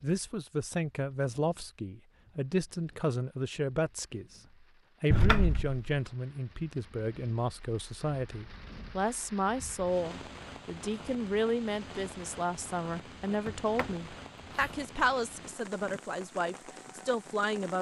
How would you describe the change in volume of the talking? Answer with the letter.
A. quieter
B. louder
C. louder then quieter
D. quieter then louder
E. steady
E.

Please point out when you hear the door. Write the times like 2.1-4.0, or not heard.
5.1-5.8, 13.2-14.8.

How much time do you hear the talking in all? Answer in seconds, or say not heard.
17 s.